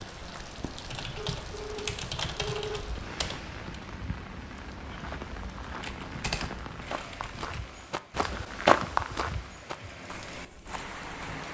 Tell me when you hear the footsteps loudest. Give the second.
9 s.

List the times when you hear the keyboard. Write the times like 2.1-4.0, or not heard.
0.9-3.6, 5.8-7.6.